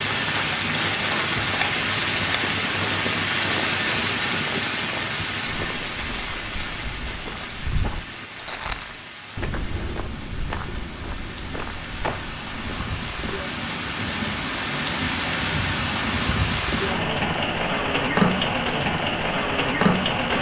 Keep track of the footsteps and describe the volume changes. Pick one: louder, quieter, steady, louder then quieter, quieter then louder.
louder then quieter.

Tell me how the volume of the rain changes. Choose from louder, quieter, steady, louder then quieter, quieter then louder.
quieter then louder.